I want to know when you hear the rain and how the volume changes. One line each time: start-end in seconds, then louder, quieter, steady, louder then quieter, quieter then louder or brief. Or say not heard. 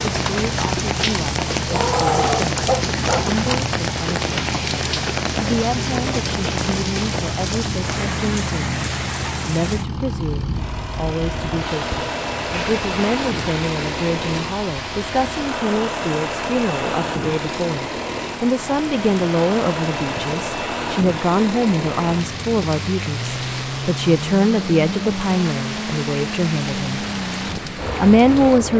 0.0-28.7 quieter.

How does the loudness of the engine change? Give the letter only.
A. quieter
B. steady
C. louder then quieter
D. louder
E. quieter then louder
B.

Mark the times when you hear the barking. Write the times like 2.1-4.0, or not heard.
1.7-3.3.